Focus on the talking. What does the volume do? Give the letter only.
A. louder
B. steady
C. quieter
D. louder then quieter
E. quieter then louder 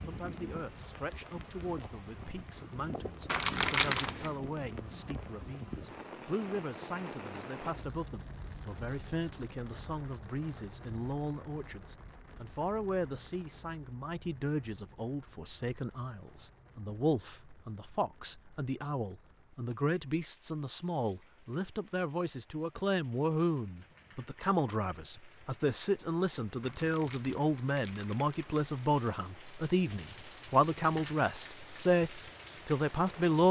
A.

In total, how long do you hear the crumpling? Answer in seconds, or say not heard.
3 s.